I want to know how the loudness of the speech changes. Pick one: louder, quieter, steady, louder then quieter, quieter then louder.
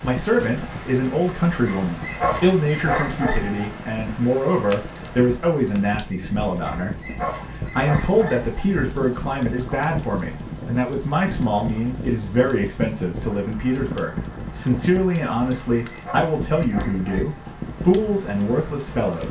steady.